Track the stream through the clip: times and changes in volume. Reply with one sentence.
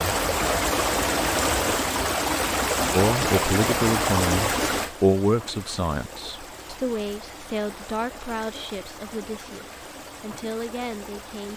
The stream can be heard from 0.0 to 11.5 s, getting quieter.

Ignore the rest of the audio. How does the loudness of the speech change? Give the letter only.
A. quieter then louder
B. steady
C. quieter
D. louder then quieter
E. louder
C.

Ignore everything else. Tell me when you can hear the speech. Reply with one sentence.
You can hear the speech from 2.9 to 11.5 s.